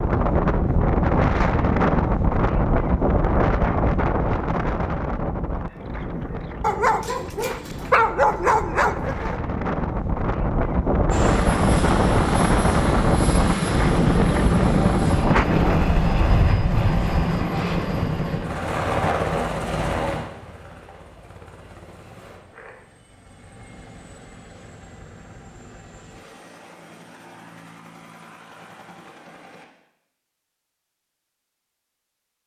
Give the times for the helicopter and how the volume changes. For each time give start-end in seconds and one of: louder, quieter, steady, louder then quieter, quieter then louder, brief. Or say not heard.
11.1-29.6 quieter.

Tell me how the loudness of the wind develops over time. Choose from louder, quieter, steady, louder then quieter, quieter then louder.
quieter then louder.